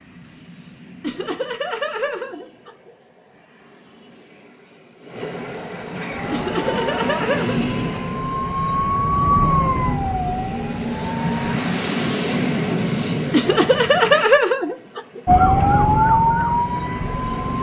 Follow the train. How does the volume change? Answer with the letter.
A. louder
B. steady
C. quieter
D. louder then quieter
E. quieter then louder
D.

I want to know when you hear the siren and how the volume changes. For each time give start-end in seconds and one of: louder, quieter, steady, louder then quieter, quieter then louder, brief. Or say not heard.
6.1-11.6 louder then quieter
15.2-17.5 brief.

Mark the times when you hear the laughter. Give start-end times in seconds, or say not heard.
1.0-2.9, 6.3-8.0, 13.3-15.2.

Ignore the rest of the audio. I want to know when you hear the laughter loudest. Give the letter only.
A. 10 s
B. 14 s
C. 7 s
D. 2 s
B.